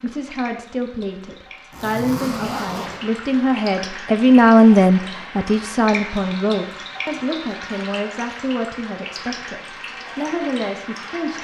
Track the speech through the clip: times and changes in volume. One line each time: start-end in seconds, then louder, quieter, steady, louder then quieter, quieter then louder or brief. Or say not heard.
0.0-11.3 louder then quieter.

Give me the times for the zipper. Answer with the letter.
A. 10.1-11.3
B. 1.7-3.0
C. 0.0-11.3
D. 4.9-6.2
B.